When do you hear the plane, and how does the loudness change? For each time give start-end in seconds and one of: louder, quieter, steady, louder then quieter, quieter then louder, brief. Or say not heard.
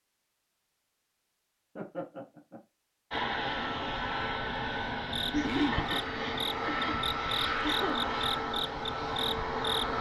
3.1-9.9 steady.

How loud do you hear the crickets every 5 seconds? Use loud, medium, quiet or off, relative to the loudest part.
off, loud.